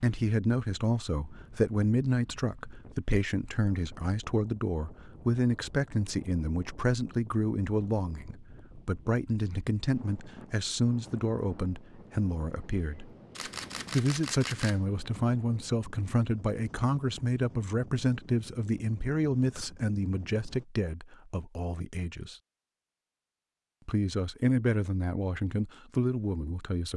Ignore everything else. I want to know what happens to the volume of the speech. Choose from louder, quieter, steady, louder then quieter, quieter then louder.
steady.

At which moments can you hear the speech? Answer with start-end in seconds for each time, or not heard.
0.0-13.1, 13.9-22.4, 23.9-26.9.